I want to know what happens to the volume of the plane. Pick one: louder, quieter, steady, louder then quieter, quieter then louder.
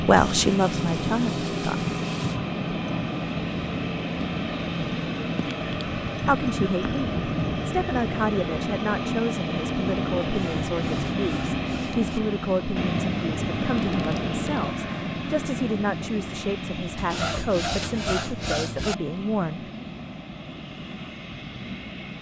quieter.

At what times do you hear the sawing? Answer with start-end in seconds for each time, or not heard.
0.1-2.4, 10.2-12.2, 16.9-18.9.